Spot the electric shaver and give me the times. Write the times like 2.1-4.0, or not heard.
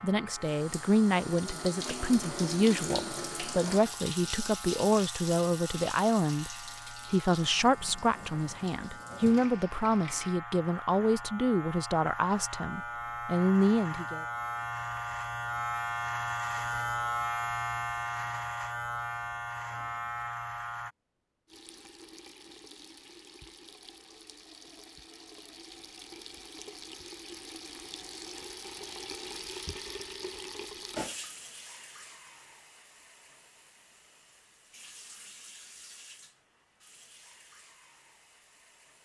0.0-20.9.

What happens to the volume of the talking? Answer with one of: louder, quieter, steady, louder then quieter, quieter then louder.
steady.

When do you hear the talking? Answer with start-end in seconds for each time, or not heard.
0.0-14.2.